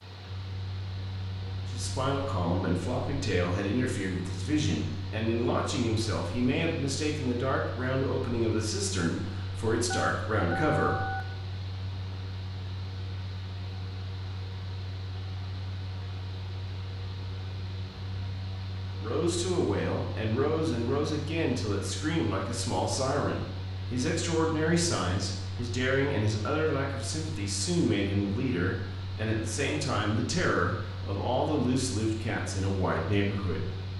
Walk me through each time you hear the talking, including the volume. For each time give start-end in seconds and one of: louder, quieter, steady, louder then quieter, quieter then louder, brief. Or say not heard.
1.6-11.1 steady
18.9-33.8 steady.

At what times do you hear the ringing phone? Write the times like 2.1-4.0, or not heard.
9.9-11.2.